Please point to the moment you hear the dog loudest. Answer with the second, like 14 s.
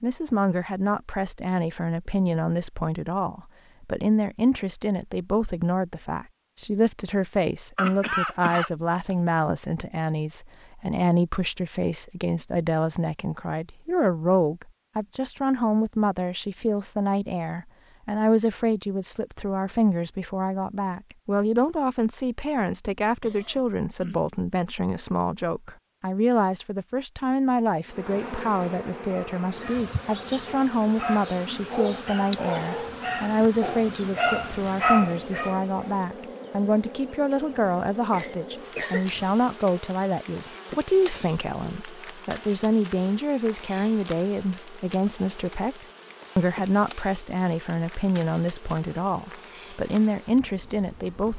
35 s.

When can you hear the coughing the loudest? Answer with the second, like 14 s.
8 s.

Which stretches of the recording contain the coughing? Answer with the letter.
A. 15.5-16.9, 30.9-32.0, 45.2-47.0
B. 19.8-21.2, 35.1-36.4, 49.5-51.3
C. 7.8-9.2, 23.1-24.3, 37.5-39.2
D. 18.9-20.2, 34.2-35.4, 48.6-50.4
C.